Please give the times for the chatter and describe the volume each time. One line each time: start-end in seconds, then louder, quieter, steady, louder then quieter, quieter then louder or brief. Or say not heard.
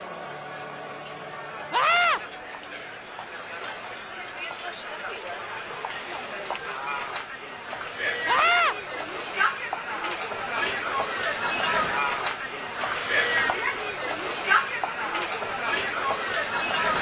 0.0-16.9 louder.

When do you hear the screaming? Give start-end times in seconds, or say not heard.
1.7-2.2, 8.2-8.8, 12.8-13.4.